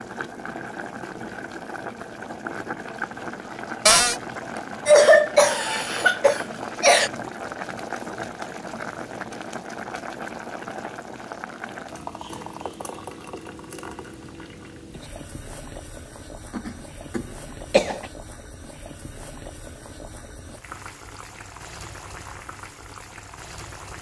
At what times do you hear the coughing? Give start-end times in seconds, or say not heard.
4.8-7.1, 16.5-18.1.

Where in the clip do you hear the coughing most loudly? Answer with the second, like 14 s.
5 s.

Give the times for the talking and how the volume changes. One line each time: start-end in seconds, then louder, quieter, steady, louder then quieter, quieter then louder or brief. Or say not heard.
not heard.